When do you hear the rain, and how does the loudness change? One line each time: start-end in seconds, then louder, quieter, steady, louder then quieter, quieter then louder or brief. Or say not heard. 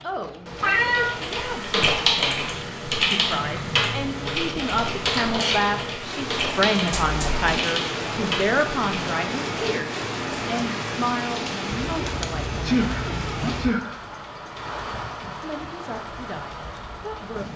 0.0-17.5 louder then quieter.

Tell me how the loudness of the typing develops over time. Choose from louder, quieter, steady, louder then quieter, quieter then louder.
quieter.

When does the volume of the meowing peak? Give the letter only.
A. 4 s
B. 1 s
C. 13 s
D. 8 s
B.